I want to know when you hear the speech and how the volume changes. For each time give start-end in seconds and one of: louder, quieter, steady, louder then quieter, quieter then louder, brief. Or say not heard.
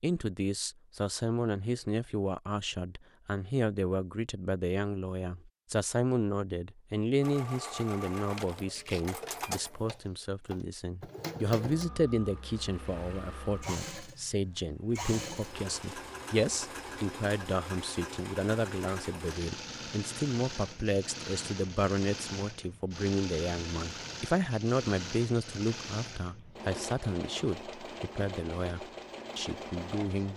0.0-30.3 steady.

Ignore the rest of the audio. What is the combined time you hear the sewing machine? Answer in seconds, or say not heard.
23 s.